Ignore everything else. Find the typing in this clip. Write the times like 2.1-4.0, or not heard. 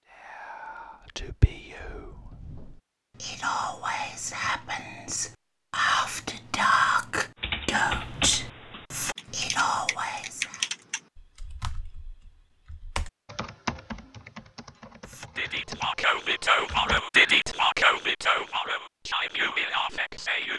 7.3-17.0.